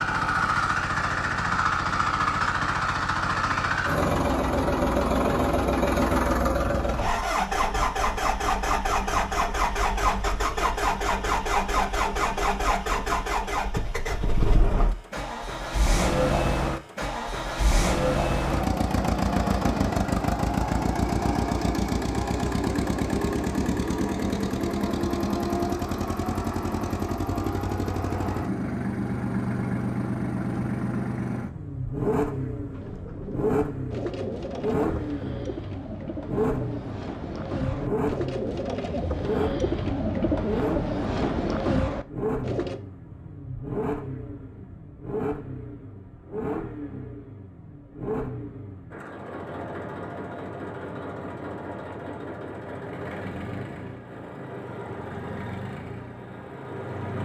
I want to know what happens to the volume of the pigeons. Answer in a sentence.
The volume of the pigeons goes up.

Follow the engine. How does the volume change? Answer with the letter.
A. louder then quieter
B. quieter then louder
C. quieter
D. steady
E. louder
C.